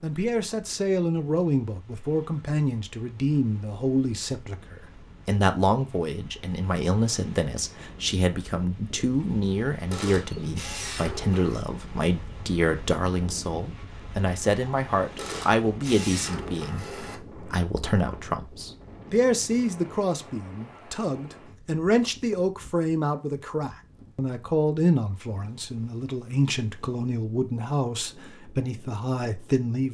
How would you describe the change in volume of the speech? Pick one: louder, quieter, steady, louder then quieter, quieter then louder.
steady.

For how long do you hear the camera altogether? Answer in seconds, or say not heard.
4 s.